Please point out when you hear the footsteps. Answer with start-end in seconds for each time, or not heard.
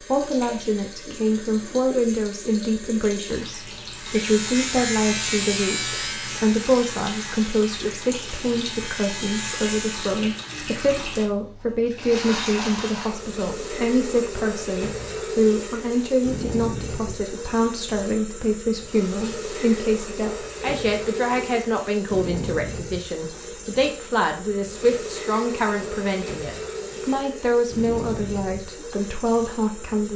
not heard.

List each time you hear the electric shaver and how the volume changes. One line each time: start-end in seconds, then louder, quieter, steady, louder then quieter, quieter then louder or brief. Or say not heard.
3.9-10.2 quieter then louder.